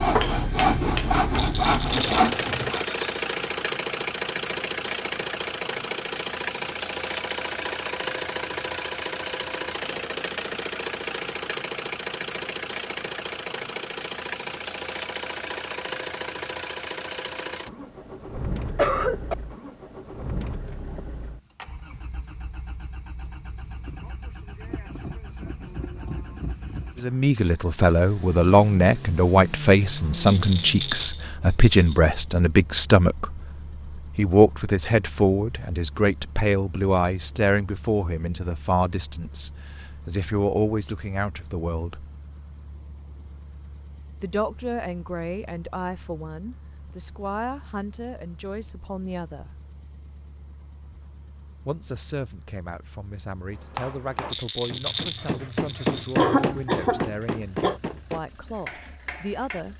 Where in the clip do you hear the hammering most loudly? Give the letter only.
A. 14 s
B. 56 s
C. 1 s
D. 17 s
B.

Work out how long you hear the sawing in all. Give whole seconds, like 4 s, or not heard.
3 s.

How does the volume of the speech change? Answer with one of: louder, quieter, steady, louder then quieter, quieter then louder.
quieter.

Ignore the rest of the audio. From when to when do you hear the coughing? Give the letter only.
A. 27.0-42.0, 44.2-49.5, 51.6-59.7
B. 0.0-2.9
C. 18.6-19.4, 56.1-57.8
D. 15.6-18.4
C.